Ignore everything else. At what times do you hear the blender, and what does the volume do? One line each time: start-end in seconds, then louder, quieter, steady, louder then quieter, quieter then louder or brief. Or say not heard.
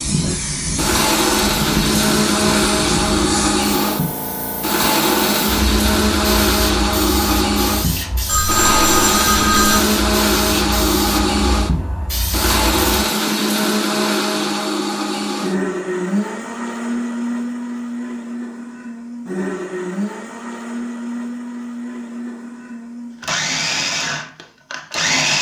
0.0-25.3 quieter.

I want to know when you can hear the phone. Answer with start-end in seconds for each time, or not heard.
8.2-9.8.